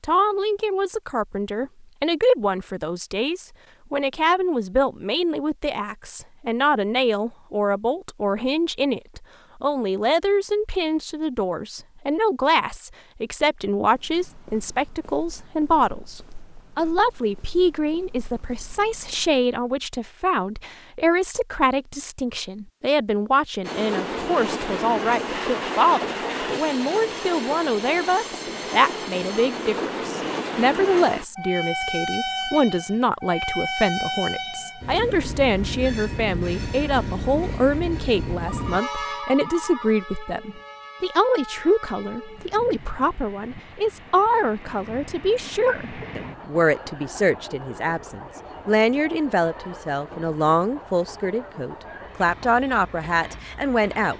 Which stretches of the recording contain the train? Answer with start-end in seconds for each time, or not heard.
23.6-54.1.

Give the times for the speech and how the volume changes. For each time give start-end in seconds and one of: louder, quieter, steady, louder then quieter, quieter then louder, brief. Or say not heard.
0.0-54.1 steady.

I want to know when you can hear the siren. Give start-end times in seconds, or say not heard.
not heard.